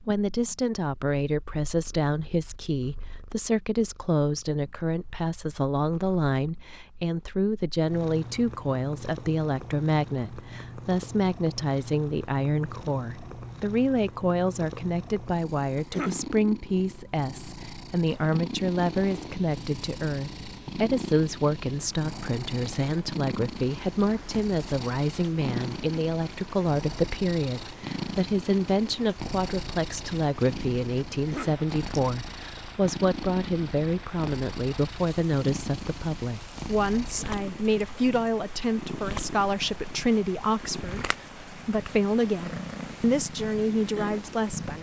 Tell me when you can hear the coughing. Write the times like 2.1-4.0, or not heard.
15.8-16.3, 31.1-31.6.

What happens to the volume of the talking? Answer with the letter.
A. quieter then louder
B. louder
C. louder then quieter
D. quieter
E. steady
E.